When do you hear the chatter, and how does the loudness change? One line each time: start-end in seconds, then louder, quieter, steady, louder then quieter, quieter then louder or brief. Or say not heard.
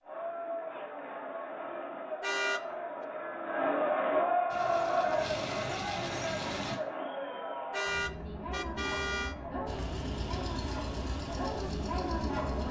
0.0-12.6 louder then quieter.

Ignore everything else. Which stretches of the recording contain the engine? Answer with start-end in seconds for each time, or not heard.
4.5-6.8, 9.7-12.6.